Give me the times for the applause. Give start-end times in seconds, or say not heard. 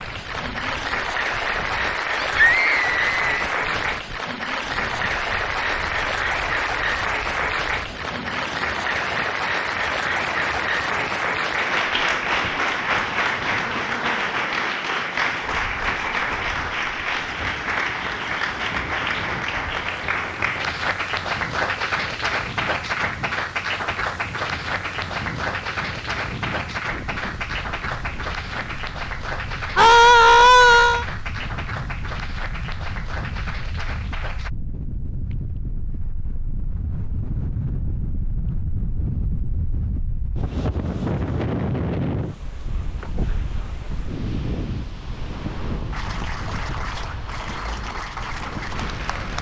0.0-34.5, 45.9-49.3.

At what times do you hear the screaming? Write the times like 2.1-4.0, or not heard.
2.2-3.5, 29.8-31.1.